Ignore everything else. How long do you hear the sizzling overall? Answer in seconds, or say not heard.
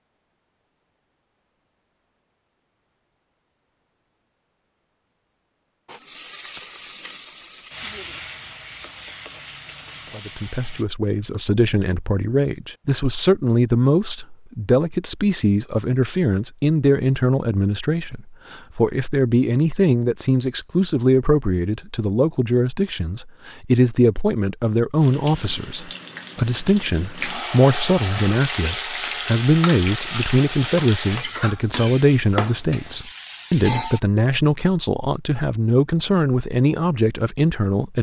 14 s.